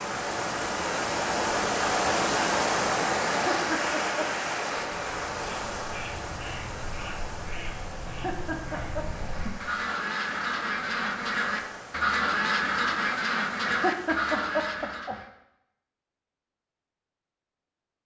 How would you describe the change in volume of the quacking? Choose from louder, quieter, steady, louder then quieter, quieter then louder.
louder.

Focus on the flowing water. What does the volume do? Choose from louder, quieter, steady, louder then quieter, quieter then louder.
quieter.